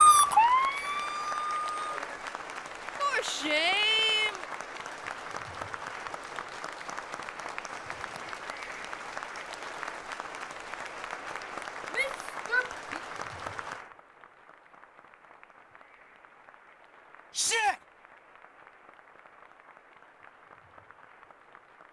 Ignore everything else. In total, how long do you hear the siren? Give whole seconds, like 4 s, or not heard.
2 s.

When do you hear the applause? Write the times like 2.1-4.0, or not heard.
0.0-21.8.